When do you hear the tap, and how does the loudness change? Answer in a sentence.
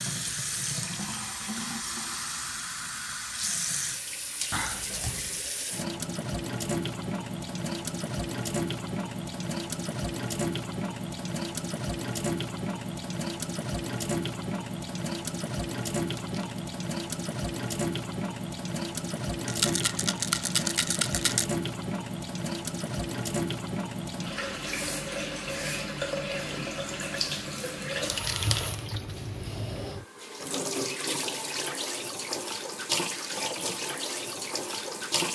You can hear the tap from 0.0 to 35.3 s, at a steady volume.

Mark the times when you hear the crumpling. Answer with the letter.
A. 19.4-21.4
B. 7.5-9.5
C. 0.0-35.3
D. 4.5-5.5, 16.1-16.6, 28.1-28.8
D.